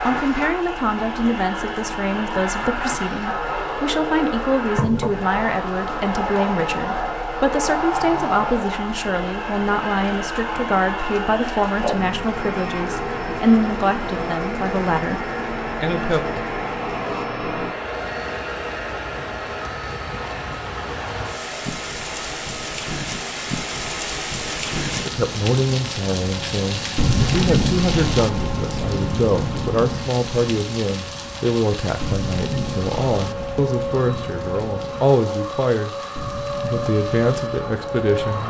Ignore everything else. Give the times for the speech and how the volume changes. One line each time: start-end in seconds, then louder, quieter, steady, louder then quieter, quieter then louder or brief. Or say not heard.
0.1-16.2 steady
25.1-36.0 steady
36.6-38.4 brief.